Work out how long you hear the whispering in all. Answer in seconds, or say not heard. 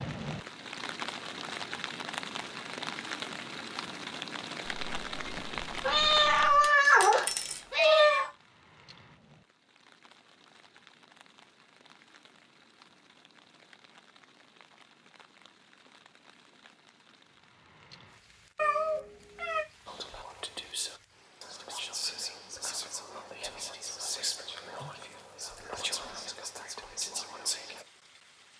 8 s.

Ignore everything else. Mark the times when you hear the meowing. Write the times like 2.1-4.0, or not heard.
5.8-8.3, 18.6-19.6.